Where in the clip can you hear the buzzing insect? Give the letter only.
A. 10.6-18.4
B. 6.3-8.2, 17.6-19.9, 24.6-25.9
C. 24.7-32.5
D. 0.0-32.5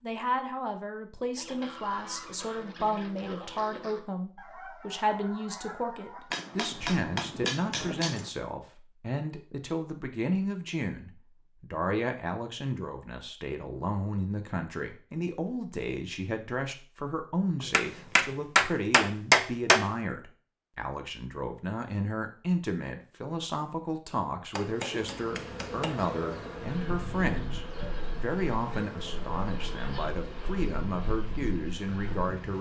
C.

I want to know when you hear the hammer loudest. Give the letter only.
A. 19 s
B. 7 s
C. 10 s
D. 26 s
A.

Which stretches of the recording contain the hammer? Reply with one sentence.
The hammer can be heard from 6.3 to 8.2 s, from 17.6 to 19.9 s and from 24.6 to 25.9 s.